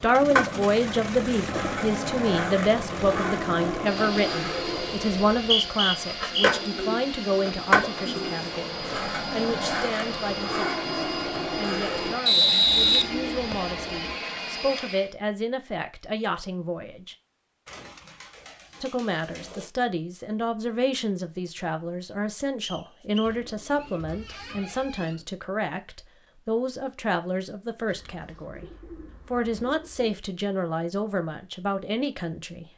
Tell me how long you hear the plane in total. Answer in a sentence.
You can hear the plane for 15 seconds altogether.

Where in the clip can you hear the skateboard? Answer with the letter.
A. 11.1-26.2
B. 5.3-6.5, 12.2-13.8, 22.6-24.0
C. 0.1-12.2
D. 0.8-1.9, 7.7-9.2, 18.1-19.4
C.